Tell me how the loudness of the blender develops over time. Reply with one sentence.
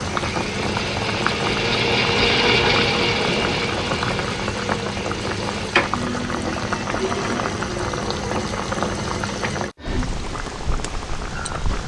The volume of the blender goes up, then down.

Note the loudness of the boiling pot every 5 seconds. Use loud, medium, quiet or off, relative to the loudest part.
loud, loud, medium.